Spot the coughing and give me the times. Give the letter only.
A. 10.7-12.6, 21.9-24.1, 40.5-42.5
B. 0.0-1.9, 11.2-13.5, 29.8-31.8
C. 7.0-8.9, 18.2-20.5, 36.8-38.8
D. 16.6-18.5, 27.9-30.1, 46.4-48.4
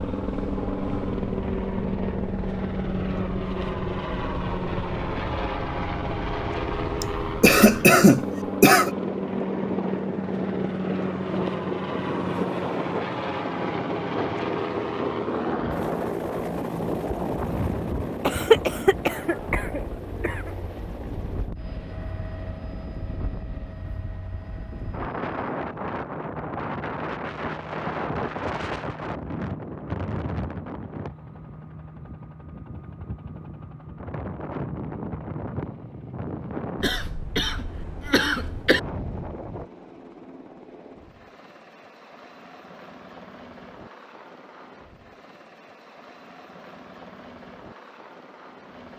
C.